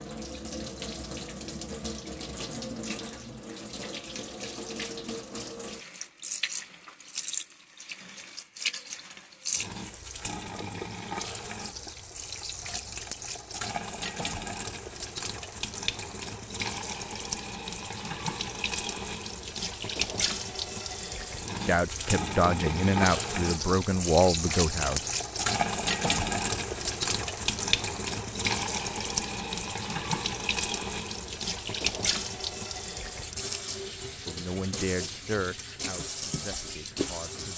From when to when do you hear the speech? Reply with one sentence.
You can hear the speech from 21.6 to 25.1 s and from 34.2 to 37.5 s.